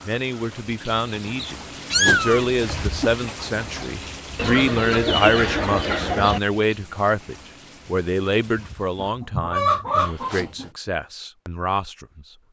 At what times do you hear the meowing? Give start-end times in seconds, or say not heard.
1.9-3.1.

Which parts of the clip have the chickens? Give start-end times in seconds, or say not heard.
1.1-2.4, 4.3-6.4, 8.9-10.7.